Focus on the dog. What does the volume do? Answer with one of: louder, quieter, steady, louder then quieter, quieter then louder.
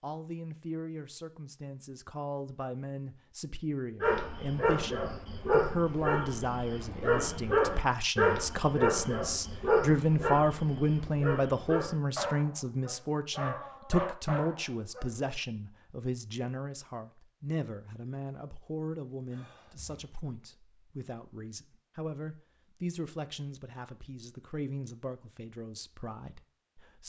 quieter.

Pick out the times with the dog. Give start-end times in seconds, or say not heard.
4.0-15.1.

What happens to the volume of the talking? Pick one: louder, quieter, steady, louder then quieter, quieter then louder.
louder then quieter.